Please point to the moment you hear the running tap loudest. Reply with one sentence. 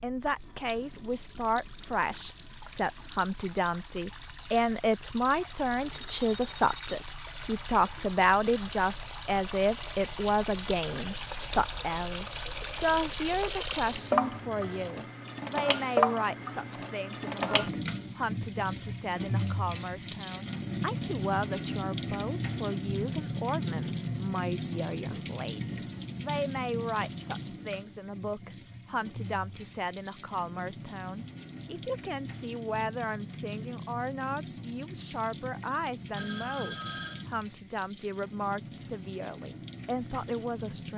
The loudest moment of the running tap is at 16 seconds.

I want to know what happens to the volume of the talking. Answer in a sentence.
The loudness of the talking goes down.